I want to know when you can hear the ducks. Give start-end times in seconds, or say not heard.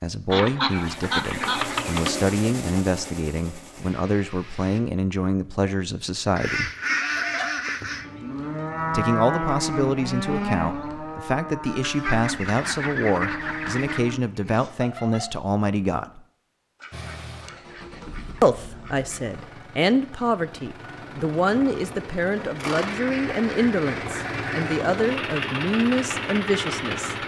0.3-2.1, 6.3-8.1, 11.8-14.2, 16.8-19.4, 22.8-24.9.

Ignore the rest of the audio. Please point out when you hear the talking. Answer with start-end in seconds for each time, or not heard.
0.0-6.7, 8.9-16.2, 18.4-27.1.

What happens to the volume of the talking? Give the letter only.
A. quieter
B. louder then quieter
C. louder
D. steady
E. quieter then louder
D.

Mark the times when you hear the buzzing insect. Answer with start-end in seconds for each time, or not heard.
not heard.